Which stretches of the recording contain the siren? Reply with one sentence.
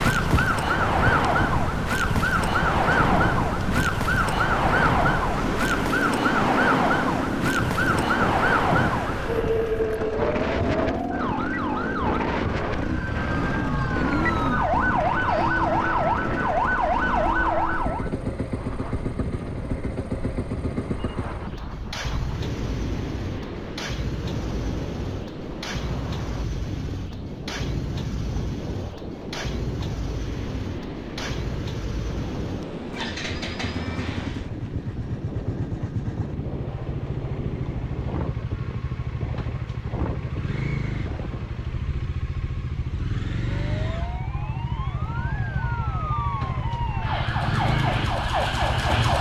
The siren can be heard from 0.0 to 18.1 s and from 43.2 to 49.1 s.